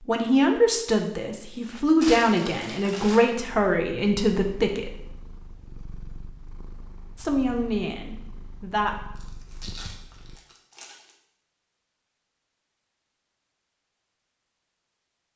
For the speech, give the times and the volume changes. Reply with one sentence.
The speech can be heard from 0.1 to 4.9 s, at a steady volume; and briefly from 7.2 to 9.0 s.